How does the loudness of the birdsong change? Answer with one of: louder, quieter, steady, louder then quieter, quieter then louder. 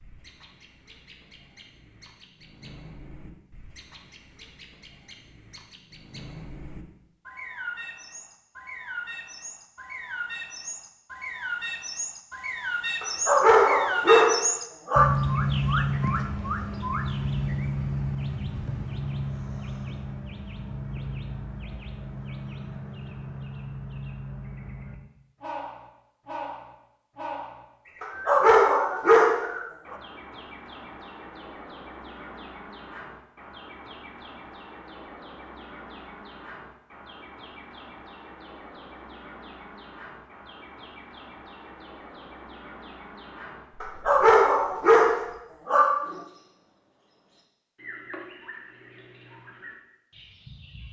louder then quieter.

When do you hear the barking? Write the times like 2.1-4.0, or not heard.
13.0-15.1, 28.0-29.9, 43.8-46.2.